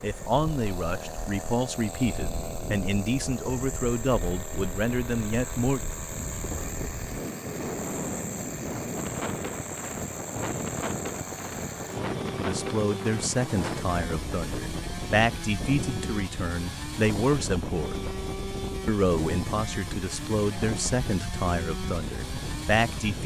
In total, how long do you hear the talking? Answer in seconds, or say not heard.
16 s.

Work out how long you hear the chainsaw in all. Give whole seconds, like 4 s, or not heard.
23 s.